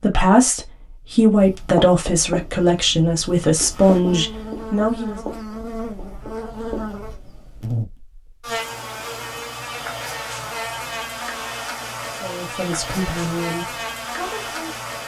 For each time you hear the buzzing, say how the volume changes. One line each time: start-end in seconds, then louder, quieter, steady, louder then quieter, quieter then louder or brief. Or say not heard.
3.7-15.0 steady.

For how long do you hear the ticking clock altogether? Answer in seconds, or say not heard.
not heard.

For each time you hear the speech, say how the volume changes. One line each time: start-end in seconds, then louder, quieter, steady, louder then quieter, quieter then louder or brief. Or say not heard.
0.0-5.2 steady
12.1-14.8 brief.